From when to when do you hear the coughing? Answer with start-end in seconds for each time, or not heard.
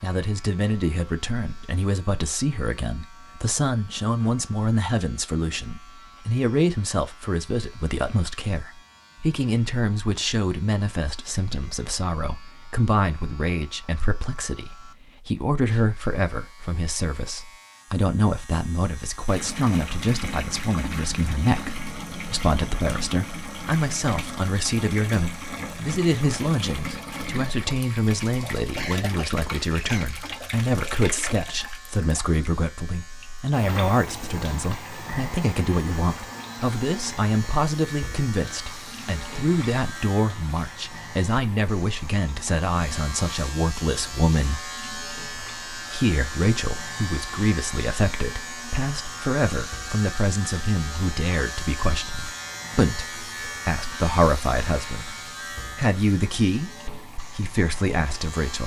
28.8-30.1.